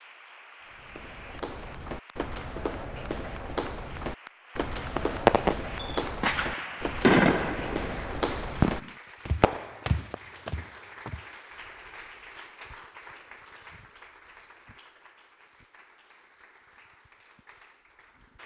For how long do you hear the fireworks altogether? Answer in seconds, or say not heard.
5 s.